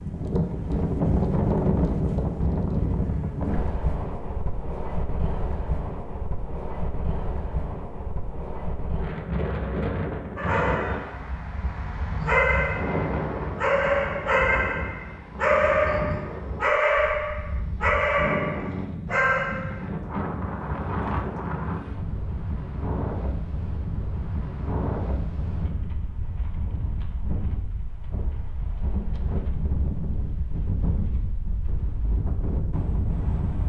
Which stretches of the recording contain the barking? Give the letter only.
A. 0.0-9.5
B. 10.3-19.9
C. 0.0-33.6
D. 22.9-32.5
B.